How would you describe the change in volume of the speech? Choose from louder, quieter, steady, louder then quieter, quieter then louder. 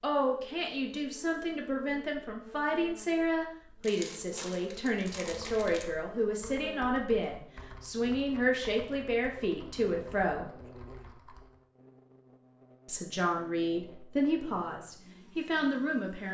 steady.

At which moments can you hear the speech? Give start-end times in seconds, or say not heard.
0.0-10.4, 12.8-16.2.